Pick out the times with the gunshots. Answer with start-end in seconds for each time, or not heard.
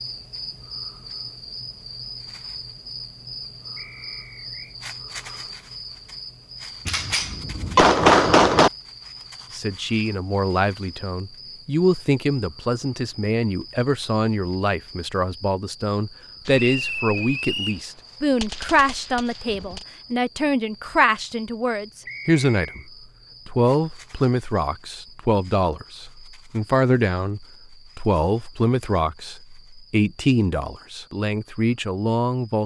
6.8-8.7, 16.4-19.9.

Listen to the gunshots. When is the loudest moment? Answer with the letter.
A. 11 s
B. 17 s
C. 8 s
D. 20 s
C.